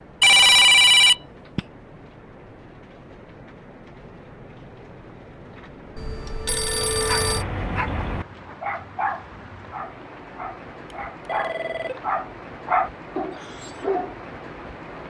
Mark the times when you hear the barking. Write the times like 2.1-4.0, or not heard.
6.7-14.2.